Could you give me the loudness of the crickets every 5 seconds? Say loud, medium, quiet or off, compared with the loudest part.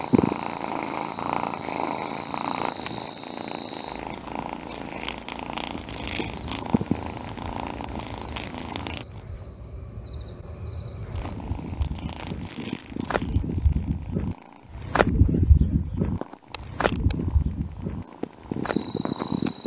quiet, quiet, medium, loud.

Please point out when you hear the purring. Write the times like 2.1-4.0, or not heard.
0.0-9.1, 11.1-19.6.